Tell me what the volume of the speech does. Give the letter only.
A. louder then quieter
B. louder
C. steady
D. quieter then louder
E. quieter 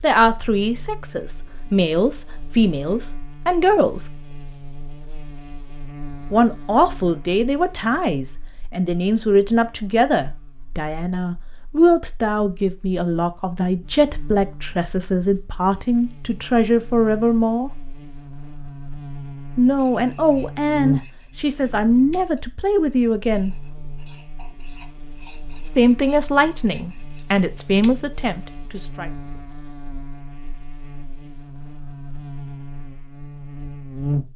C.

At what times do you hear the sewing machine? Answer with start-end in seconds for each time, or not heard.
not heard.